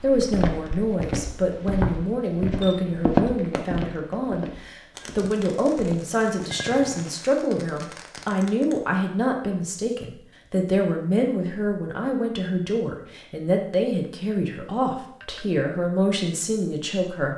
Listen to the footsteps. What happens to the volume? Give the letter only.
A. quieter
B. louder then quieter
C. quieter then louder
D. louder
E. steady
B.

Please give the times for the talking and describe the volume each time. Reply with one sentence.
The talking can be heard from 0.0 to 17.3 s, at a steady volume.